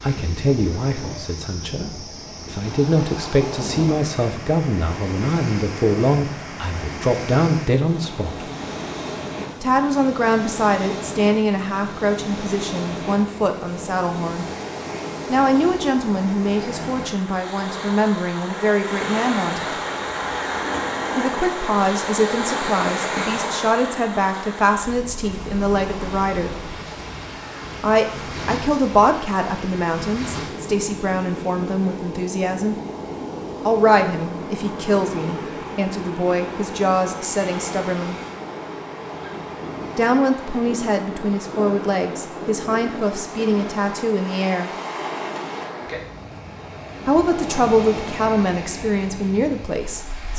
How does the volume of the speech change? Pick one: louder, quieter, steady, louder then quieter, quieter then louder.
steady.